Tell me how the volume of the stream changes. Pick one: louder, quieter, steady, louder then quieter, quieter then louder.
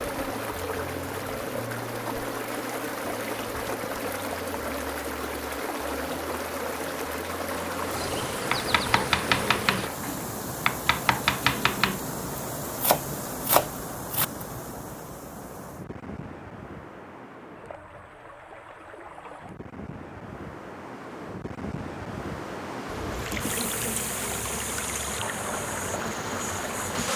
quieter then louder.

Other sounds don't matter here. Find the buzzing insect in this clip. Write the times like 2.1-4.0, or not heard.
0.0-9.9, 22.9-27.1.